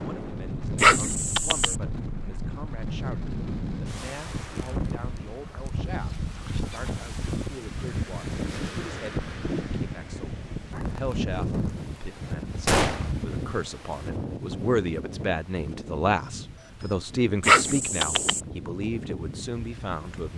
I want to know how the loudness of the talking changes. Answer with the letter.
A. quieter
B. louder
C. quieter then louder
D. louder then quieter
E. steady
B.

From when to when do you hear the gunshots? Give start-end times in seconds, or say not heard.
12.7-13.1.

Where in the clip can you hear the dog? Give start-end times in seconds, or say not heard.
0.8-1.8, 17.4-18.4.